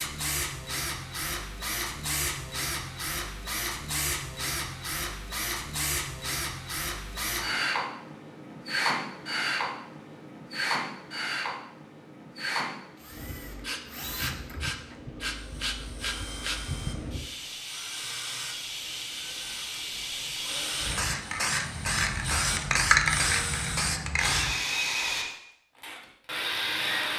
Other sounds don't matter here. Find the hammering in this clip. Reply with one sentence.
You can't hear the hammering here.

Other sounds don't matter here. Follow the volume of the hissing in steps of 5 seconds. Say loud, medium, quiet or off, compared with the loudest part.
off, off, medium, medium, loud, off.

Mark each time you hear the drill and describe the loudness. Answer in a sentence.
The drill can be heard from 0.0 to 27.1 s, getting quieter then louder.